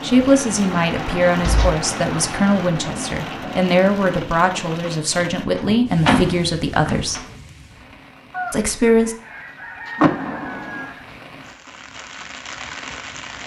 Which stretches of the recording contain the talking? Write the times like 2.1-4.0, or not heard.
0.0-7.2, 8.5-9.2.